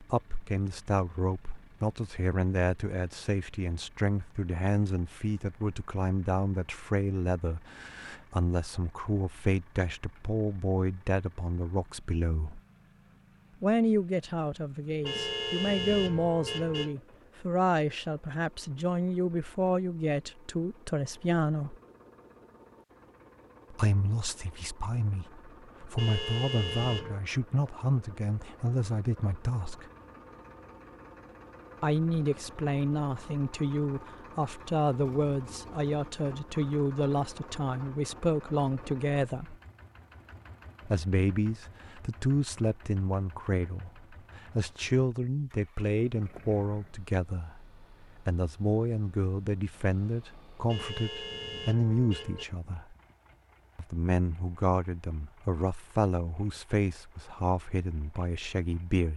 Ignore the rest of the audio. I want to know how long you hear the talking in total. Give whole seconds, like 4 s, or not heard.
52 s.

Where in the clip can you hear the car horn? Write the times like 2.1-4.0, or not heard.
15.0-16.9, 25.9-27.2, 50.6-52.5.